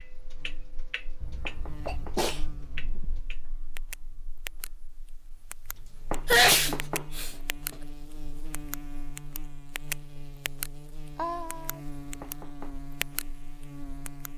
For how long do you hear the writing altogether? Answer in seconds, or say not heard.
not heard.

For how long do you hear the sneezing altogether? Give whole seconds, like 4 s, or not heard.
4 s.